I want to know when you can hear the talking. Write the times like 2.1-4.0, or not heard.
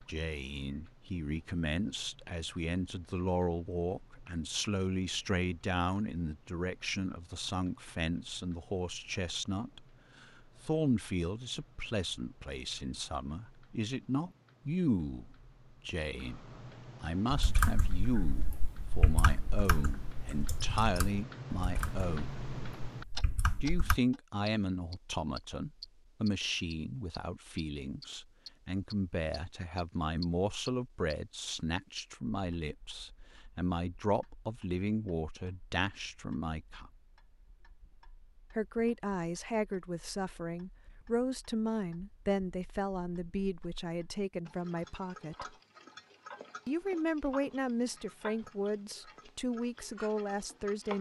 0.0-22.3, 23.6-36.9, 38.5-45.5, 46.6-50.9.